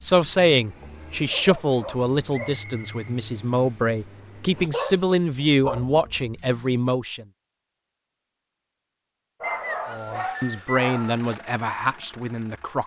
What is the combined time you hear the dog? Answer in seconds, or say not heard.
5 s.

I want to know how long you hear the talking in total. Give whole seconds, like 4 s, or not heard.
10 s.